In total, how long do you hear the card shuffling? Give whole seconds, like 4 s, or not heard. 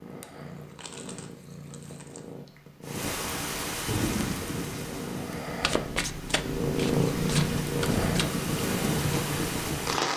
4 s.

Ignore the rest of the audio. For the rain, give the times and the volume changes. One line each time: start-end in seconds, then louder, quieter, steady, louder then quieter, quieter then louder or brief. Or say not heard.
2.9-10.1 quieter then louder.